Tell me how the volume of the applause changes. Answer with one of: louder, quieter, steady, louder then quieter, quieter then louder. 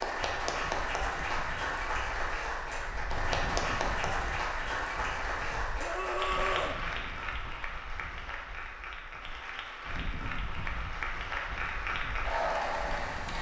quieter then louder.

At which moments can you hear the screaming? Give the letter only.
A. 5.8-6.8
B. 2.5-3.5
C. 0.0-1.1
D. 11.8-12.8
A.